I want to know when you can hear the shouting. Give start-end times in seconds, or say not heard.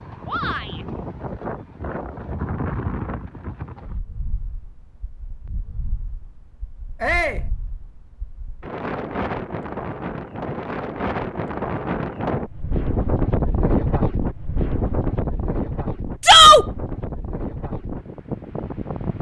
0.2-0.8, 7.0-7.5, 16.2-16.6.